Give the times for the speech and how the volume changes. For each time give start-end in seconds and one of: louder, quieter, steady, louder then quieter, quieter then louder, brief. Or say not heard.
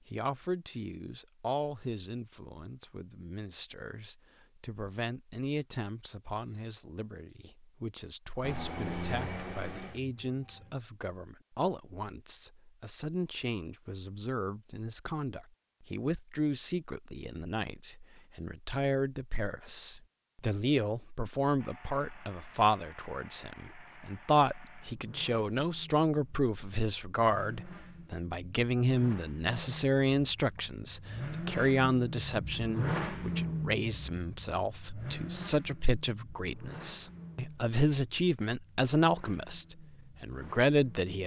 0.1-41.2 louder.